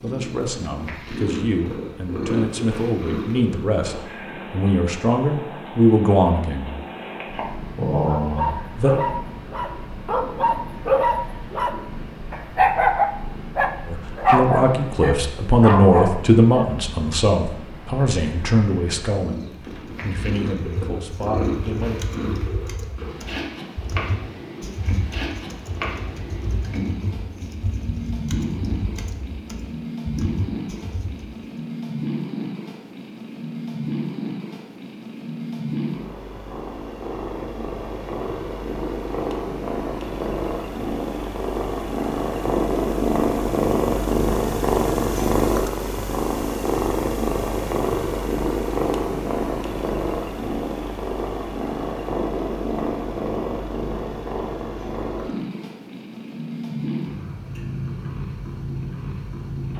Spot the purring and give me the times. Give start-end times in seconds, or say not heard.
0.0-59.7.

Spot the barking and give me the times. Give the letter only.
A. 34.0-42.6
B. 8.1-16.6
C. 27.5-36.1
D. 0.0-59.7
B.